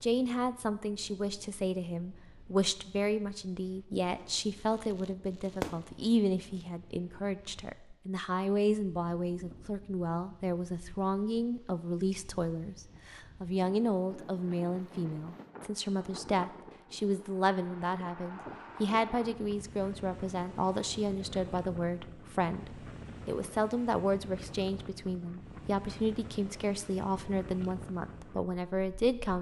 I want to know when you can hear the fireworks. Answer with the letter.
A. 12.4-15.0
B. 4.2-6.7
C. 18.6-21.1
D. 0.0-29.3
B.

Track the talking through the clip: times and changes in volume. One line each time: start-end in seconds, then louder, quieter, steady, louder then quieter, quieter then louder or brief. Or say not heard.
0.0-29.3 steady.